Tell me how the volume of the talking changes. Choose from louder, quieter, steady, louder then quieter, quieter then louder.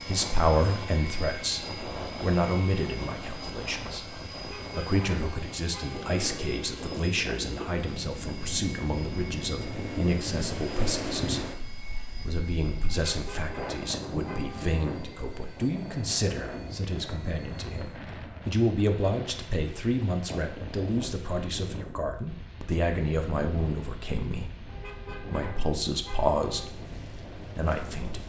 steady.